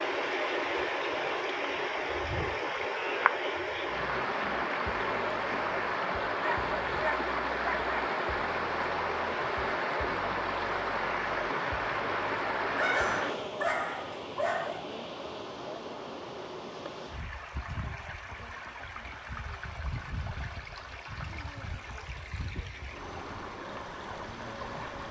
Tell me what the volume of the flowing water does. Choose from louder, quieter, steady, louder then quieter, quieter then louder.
quieter.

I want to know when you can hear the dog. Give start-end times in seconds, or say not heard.
6.4-7.9, 12.8-14.8.